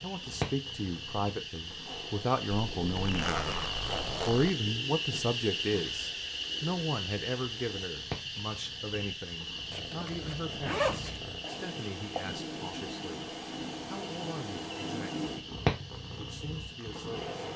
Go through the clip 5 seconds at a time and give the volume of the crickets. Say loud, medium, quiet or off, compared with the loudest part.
loud, loud, medium, medium.